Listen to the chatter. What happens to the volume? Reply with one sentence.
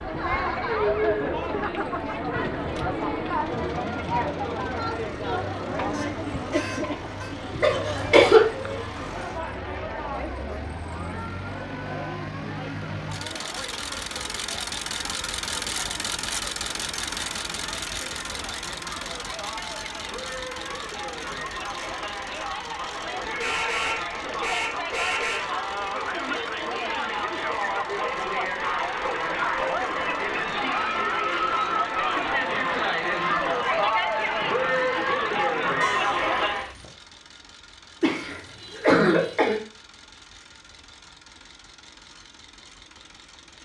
The volume of the chatter goes down, then up.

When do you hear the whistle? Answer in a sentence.
The whistle can't be heard in this clip.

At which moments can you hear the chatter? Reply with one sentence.
The chatter can be heard from 0.0 to 36.8 s.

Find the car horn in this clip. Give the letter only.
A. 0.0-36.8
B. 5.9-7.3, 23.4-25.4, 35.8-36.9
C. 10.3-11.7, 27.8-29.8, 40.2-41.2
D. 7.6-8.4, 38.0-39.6
B.